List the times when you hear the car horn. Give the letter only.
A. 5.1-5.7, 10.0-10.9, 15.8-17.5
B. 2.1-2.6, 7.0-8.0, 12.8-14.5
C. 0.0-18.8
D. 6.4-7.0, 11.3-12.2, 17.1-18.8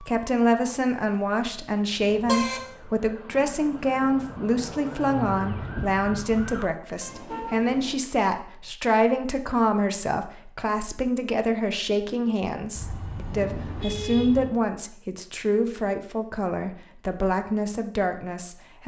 B.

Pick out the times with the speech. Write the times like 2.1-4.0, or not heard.
0.0-18.8.